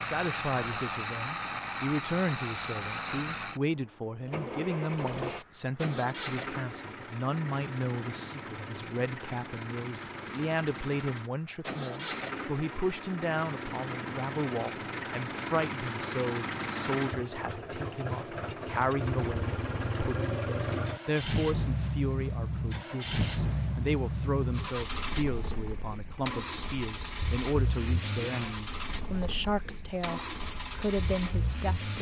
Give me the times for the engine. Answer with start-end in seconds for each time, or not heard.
0.0-31.9.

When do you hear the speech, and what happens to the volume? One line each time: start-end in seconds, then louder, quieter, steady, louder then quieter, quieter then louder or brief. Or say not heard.
0.0-31.9 steady.